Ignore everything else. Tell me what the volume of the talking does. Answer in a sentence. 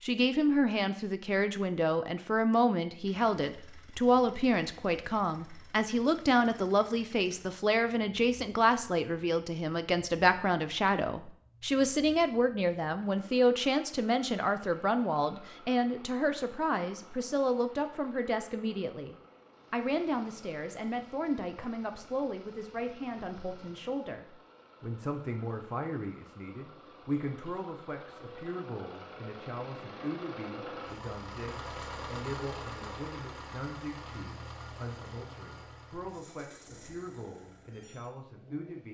The volume of the talking goes down.